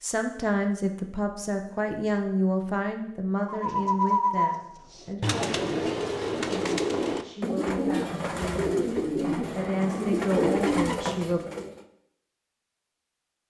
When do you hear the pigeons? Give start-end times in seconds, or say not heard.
3.5-11.8.